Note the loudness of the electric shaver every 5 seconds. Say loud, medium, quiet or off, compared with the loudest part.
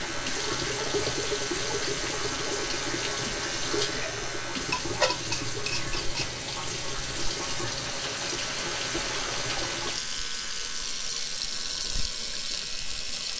loud, loud, medium.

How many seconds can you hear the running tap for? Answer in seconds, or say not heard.
13 s.